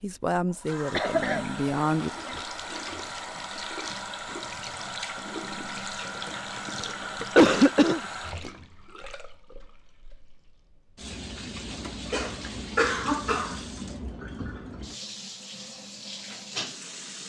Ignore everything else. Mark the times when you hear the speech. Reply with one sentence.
You can hear the speech from 0.0 to 2.1 s.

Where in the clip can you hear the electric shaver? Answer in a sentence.
You can't hear the electric shaver here.